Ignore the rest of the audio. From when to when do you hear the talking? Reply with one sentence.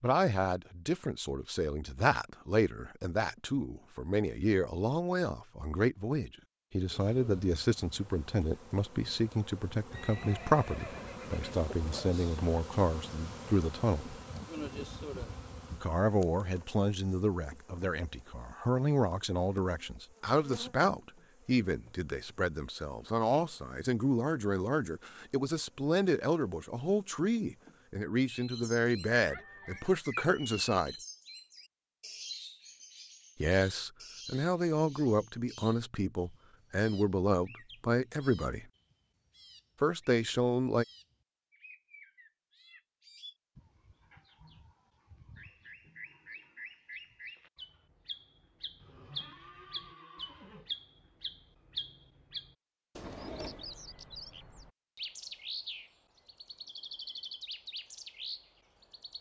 The talking can be heard from 0.0 to 14.2 s, from 15.7 to 30.9 s, from 33.4 to 38.6 s and from 39.8 to 40.9 s.